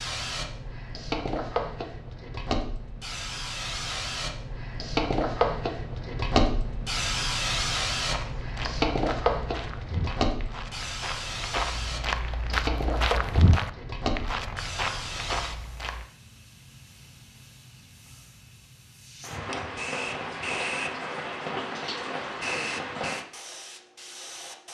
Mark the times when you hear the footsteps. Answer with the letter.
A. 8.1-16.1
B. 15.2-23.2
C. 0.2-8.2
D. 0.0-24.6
A.